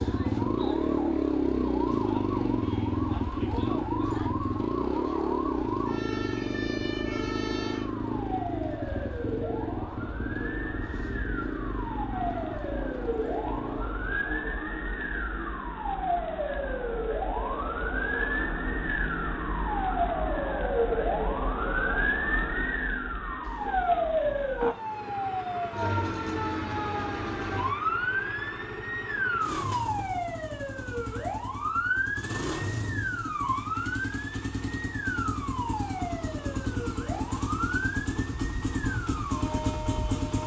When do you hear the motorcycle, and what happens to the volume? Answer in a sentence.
The motorcycle can be heard from 0.0 to 14.2 s, getting quieter; and from 24.6 to 40.4 s, getting louder.